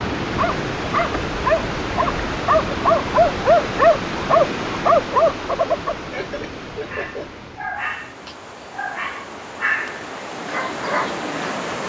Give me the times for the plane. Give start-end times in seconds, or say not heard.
not heard.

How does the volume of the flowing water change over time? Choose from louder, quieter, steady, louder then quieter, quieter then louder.
quieter then louder.